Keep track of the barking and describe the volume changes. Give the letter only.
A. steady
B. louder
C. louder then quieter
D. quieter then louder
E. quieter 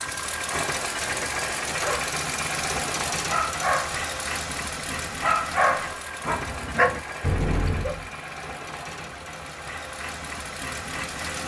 B.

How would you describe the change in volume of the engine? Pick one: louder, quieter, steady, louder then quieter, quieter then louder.
quieter.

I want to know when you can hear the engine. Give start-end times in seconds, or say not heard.
0.0-11.4.